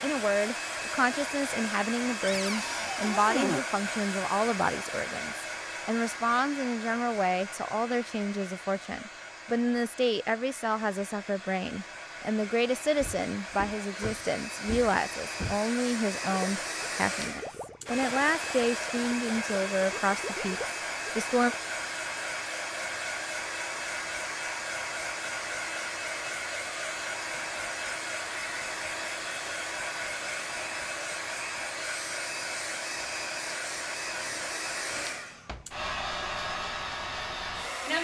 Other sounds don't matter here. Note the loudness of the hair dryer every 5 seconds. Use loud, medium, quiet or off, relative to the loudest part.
loud, medium, medium, loud, loud, loud, loud, loud.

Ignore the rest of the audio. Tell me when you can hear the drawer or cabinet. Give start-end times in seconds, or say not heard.
2.2-3.6, 12.9-15.6, 34.1-35.6.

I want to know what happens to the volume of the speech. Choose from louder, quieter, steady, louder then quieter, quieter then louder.
steady.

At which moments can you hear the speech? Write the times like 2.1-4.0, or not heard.
0.0-21.6.